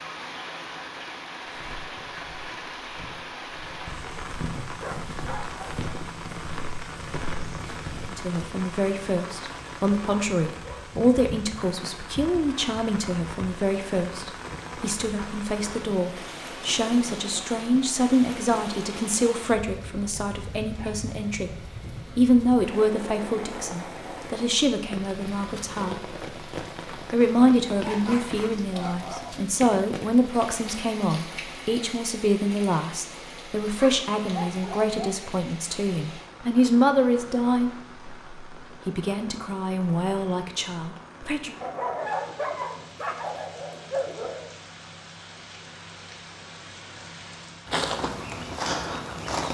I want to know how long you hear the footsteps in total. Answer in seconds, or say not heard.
9 s.